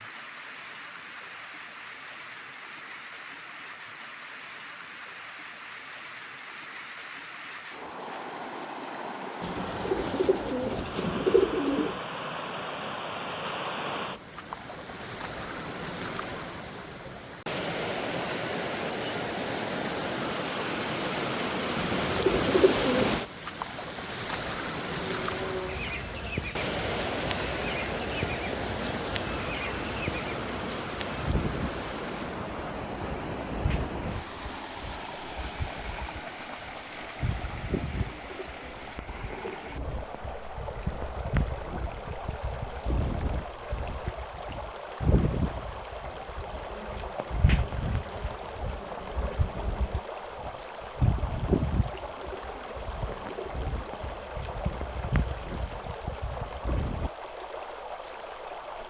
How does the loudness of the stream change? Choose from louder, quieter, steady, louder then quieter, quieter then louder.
louder then quieter.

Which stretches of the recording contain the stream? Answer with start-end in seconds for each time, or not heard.
0.0-58.8.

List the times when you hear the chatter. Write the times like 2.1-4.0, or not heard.
not heard.